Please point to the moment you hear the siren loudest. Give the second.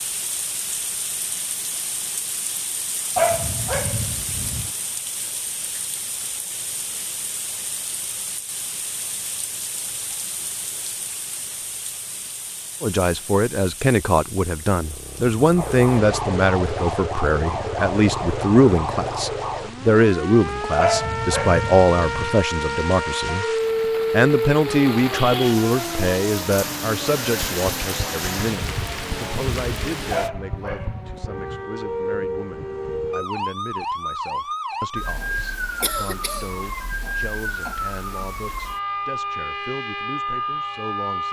24 s.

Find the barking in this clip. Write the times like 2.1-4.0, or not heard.
3.1-4.7, 20.8-22.4, 30.1-31.6.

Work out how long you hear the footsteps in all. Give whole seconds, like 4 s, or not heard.
not heard.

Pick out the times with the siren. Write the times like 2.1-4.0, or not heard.
15.6-41.2.